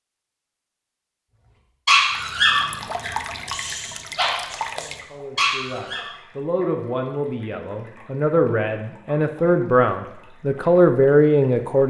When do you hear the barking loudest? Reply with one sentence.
The loudest moment of the barking is at 2 seconds.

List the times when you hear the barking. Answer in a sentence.
The barking can be heard from 1.9 to 6.1 s.